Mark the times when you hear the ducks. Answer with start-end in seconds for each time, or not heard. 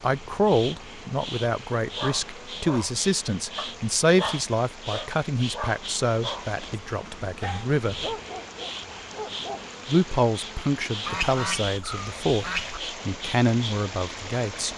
11.1-12.8.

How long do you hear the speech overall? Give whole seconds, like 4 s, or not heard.
13 s.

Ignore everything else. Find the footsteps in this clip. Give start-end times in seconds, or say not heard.
not heard.